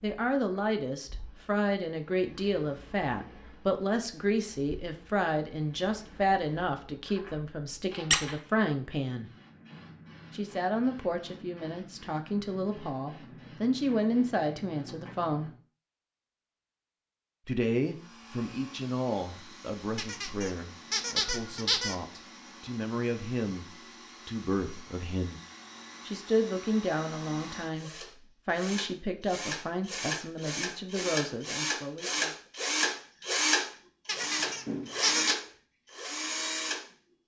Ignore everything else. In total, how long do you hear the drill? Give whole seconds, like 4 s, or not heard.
19 s.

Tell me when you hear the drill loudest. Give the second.
33 s.